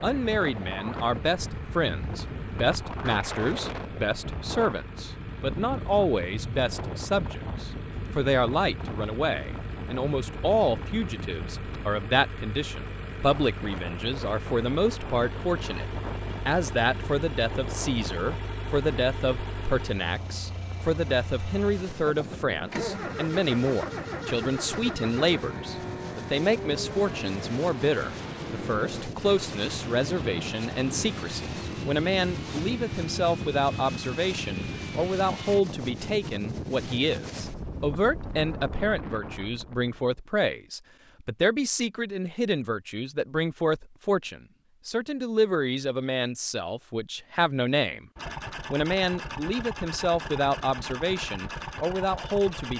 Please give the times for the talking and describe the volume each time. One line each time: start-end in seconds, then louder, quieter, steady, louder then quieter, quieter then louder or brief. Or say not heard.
0.0-15.8 steady
16.4-52.7 steady.